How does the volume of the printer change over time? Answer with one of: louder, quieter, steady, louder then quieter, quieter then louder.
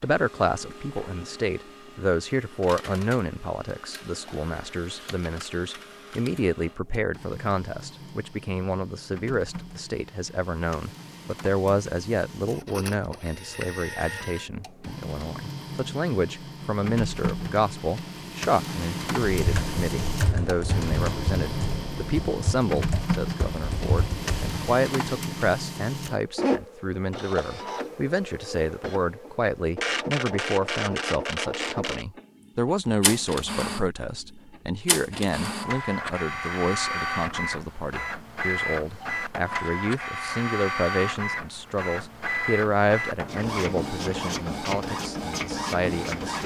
louder.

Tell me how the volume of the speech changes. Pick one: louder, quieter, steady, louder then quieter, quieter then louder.
steady.